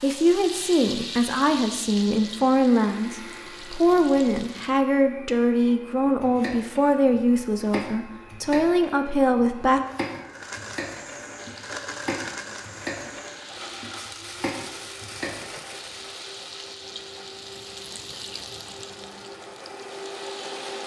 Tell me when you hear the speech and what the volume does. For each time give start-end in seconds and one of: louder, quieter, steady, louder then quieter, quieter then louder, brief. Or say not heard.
0.0-9.8 steady.